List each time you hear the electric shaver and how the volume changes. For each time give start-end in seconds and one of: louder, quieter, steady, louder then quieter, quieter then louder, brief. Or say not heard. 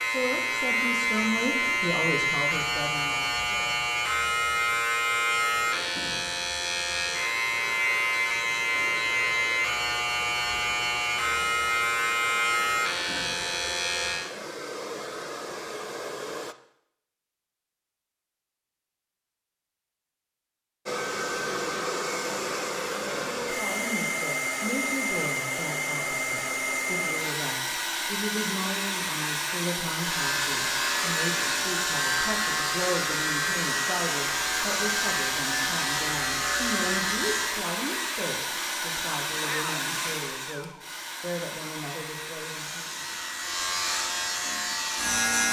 0.0-14.3 steady
29.9-37.6 steady
42.5-45.4 brief.